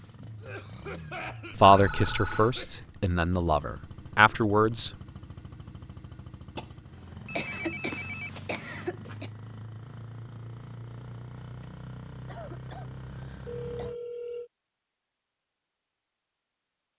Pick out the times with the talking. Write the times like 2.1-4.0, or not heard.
1.6-4.9.